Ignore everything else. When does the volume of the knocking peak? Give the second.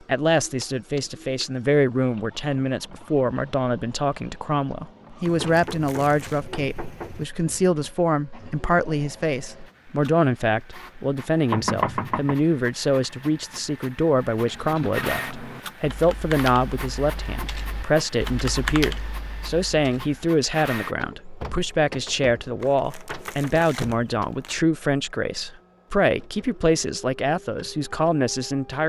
12 s.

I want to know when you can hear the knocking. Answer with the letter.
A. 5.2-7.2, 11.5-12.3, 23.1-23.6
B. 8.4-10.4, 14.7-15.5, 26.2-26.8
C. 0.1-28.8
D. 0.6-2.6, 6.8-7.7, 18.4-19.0
A.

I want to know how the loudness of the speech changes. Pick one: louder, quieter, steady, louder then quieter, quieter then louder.
steady.